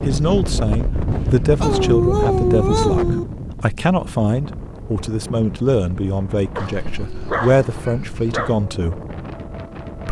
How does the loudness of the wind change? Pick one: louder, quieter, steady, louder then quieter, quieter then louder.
quieter.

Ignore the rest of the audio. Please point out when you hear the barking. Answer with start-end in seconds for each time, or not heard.
1.6-3.2, 6.5-8.6.